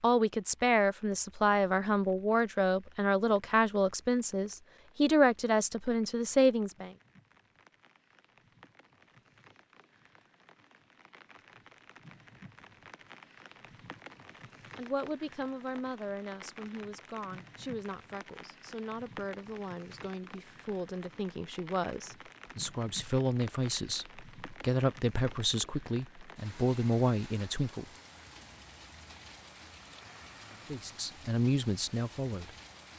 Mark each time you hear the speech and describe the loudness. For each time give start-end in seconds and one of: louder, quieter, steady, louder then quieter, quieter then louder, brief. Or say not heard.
0.0-6.9 steady
14.8-27.9 louder
30.6-32.5 brief.